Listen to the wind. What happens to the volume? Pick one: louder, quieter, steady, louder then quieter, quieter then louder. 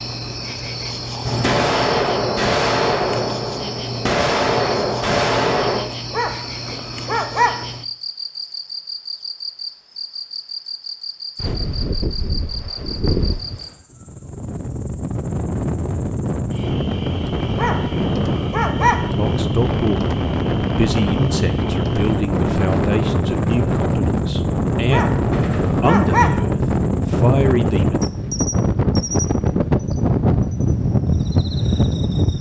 louder.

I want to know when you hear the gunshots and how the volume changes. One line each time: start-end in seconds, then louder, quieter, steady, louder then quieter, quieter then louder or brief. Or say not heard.
1.2-5.8 quieter then louder
25.3-25.8 brief.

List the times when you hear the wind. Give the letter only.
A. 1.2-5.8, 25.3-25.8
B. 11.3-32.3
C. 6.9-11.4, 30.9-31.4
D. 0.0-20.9
B.